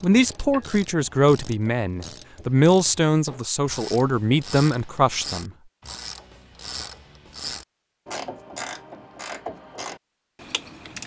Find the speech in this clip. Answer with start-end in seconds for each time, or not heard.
0.0-5.5.